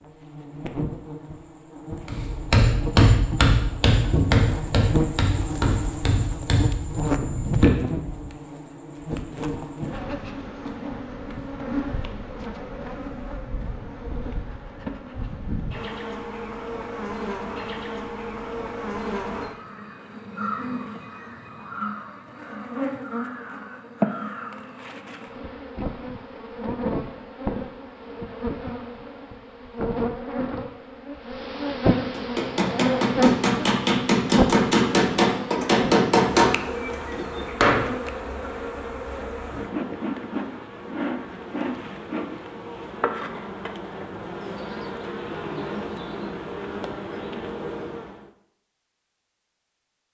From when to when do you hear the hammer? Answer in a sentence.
You can hear the hammer from 2.0 to 8.2 s and from 32.1 to 38.1 s.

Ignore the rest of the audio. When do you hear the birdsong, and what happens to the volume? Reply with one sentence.
The birdsong can't be heard in this clip.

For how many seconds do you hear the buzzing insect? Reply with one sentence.
The buzzing insect can be heard for 48 seconds in total.